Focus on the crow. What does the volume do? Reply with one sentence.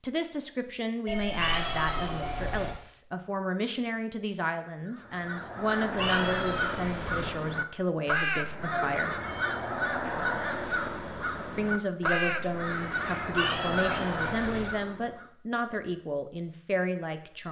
The loudness of the crow stays about the same.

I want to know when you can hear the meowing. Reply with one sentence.
The meowing can be heard from 1.4 to 2.8 s, from 6.0 to 7.3 s and from 13.3 to 14.7 s.